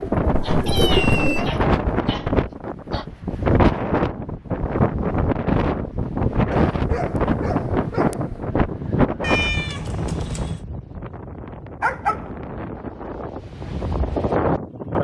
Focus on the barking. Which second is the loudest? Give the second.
12 s.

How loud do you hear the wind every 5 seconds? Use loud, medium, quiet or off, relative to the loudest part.
loud, loud, medium.